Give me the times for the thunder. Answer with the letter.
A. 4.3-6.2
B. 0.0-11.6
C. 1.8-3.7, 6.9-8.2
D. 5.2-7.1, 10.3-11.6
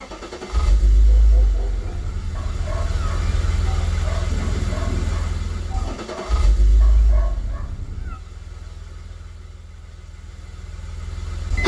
A.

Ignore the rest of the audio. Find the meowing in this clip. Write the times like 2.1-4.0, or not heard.
1.8-3.7, 6.9-8.2.